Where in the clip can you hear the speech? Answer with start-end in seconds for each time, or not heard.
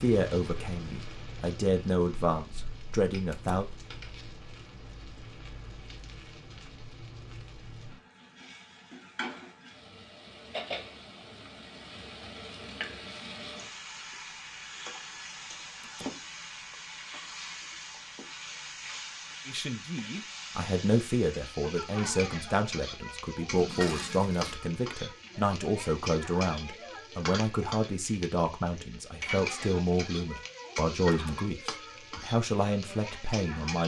0.0-3.6, 19.4-33.8.